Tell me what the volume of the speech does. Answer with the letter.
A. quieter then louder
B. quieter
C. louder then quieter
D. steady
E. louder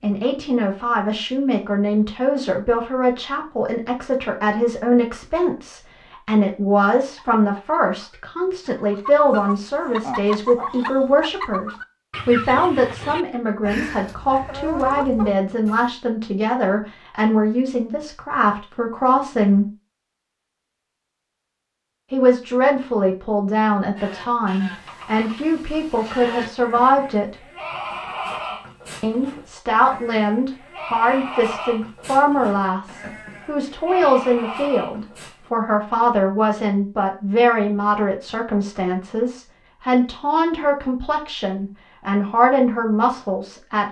D.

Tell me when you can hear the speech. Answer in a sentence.
The speech can be heard from 0.0 to 19.6 s, from 22.1 to 27.4 s and from 29.0 to 43.8 s.